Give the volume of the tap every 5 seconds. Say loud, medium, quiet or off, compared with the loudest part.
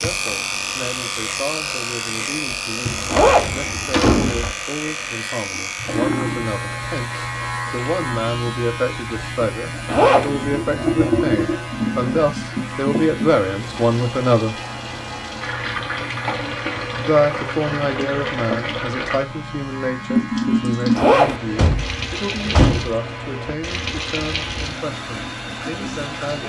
medium, quiet, loud, loud, loud, medium.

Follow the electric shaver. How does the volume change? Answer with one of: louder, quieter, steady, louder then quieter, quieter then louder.
quieter.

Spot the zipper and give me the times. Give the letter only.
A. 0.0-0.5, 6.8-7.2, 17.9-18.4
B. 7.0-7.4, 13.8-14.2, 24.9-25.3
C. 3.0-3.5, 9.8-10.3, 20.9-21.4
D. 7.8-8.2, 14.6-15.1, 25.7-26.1
C.